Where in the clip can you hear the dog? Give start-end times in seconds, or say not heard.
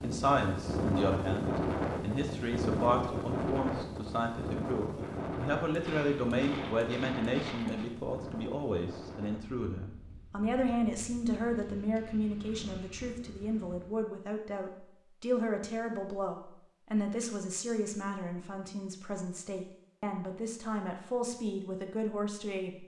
not heard.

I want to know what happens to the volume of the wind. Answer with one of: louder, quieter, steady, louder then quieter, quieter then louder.
quieter.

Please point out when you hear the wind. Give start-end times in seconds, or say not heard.
0.0-14.1.